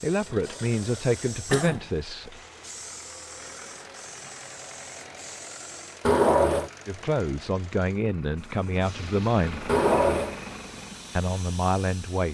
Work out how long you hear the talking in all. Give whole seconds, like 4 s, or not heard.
6 s.